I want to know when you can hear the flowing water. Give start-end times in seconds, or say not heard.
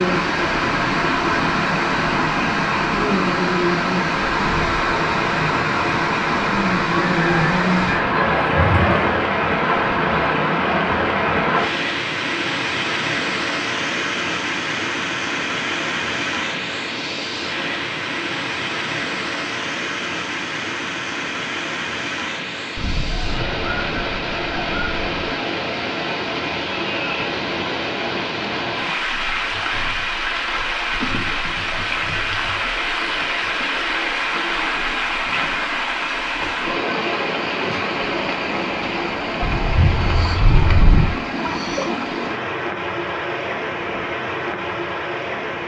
0.0-45.6.